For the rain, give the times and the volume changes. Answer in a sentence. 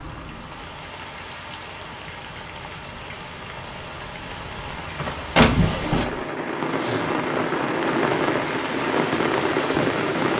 The rain can be heard from 0.0 to 10.3 s, getting louder.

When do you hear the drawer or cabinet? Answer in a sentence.
The drawer or cabinet can be heard from 5.3 to 6.2 s.